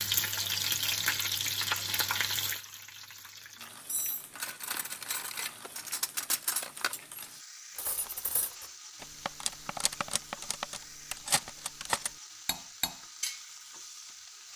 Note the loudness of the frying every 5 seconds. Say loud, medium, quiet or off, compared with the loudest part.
loud, quiet, quiet.